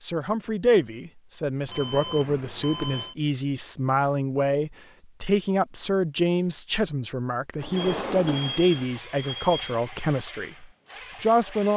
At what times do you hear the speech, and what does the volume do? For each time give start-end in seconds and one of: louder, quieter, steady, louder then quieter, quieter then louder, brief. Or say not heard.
0.0-11.7 steady.